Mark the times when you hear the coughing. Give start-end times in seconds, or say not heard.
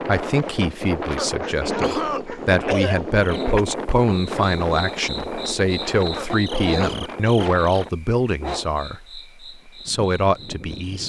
1.1-3.6, 6.2-7.0.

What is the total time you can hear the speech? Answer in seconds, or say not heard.
11 s.